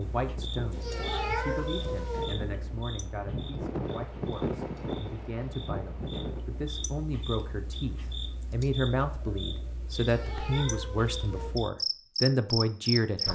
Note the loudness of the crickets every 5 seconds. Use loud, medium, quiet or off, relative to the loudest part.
medium, medium, loud.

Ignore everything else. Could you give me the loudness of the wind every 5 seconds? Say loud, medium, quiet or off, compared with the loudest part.
loud, loud, off.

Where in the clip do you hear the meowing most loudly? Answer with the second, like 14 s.
1 s.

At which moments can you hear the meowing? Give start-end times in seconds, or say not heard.
0.7-2.2, 9.9-11.5.